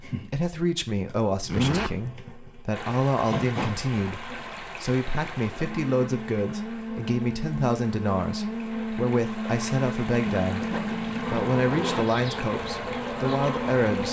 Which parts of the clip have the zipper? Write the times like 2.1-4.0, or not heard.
1.4-1.9, 10.4-12.1.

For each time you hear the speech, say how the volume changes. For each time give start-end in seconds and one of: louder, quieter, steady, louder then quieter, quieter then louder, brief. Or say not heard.
0.1-14.0 steady.